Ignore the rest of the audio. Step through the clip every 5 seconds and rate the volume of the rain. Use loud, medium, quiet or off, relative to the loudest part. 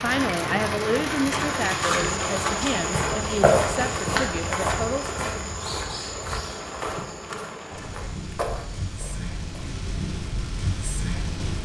loud, medium, loud.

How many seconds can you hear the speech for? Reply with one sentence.
You can hear the speech for 5 seconds altogether.